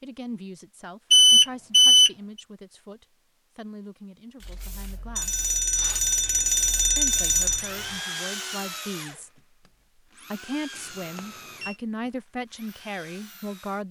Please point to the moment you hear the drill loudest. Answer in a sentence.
The loudest moment of the drill is at 8 seconds.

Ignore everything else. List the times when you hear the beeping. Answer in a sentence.
The beeping can be heard from 1.1 to 2.1 s, from 5.2 to 7.7 s and from 10.8 to 11.8 s.